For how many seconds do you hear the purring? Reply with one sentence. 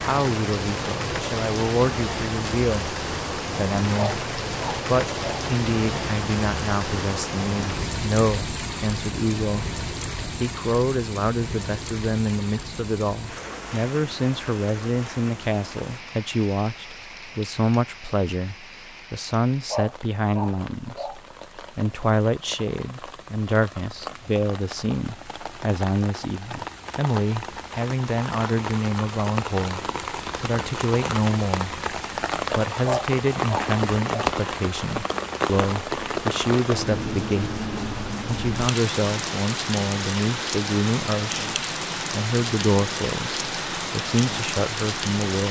You can't hear the purring here.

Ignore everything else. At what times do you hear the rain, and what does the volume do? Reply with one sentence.
The rain can be heard from 0.0 to 45.4 s, getting quieter then louder.